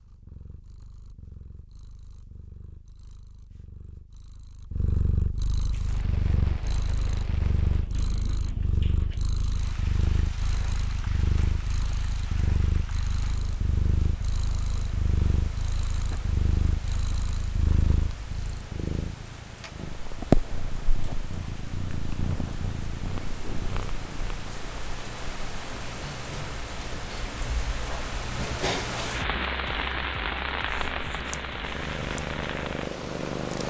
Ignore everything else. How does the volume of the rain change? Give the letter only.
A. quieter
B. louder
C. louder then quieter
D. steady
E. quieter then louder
B.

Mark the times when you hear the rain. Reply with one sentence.
You can hear the rain from 5.7 to 33.6 s.